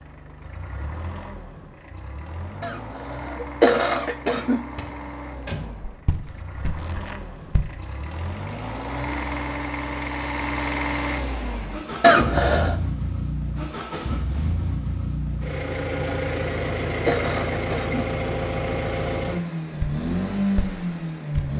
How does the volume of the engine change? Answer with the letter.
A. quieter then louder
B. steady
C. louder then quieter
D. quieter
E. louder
E.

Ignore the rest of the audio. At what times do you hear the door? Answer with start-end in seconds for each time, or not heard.
4.8-5.7.